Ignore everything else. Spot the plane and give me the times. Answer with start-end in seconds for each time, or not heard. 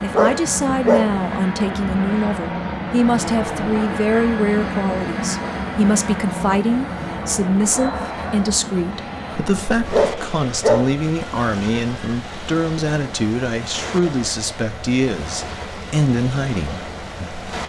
0.0-17.6.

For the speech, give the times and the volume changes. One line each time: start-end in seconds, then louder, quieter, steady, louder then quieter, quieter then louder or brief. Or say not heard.
0.0-17.3 steady.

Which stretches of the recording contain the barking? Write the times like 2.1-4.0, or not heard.
0.1-1.1, 9.9-10.9.